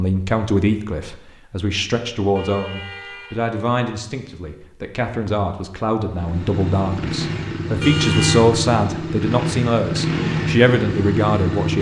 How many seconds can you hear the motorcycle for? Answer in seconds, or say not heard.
6 s.